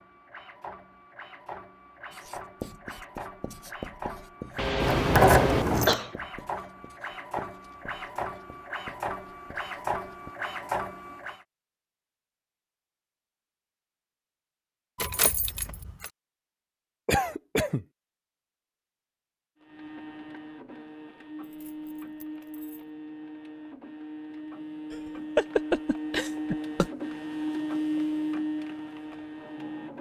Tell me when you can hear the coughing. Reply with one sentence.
The coughing can be heard from 4.5 to 6.2 s, from 17.1 to 17.9 s and from 24.9 to 26.9 s.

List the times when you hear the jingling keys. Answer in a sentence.
You can hear the jingling keys from 4.8 to 6.0 s, from 14.9 to 16.1 s and from 21.4 to 22.8 s.